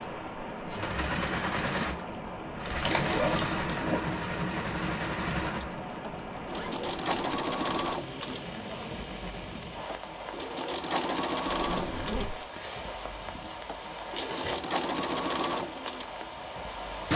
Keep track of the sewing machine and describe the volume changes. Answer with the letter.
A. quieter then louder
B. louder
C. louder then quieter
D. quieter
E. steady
E.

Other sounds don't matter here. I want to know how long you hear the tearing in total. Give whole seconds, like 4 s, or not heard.
3 s.